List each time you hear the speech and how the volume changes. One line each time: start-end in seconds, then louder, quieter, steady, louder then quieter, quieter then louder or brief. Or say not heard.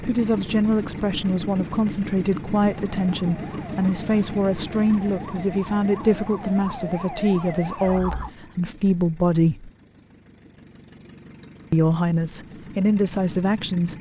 0.0-9.7 steady
11.7-13.9 brief.